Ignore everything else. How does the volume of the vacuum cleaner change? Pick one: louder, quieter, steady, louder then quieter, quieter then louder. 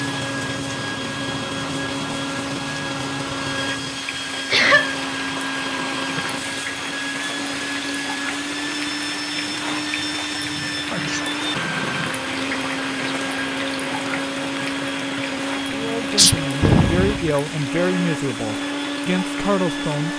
steady.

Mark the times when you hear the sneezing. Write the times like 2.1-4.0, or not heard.
4.3-5.0, 10.7-11.2, 16.1-17.3.